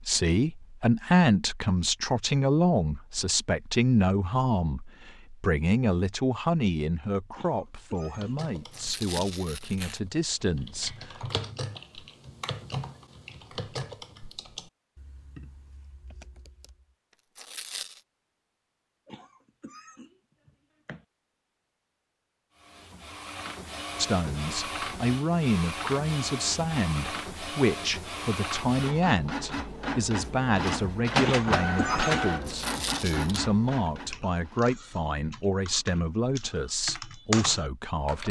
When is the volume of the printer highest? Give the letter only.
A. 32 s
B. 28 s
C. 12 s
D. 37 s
A.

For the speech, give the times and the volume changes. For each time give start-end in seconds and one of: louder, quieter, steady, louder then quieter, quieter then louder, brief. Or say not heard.
0.1-11.2 quieter
23.9-38.2 steady.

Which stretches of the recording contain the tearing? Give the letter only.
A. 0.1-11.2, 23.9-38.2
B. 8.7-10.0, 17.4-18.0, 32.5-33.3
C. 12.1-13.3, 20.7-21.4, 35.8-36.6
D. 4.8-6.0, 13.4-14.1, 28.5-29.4
B.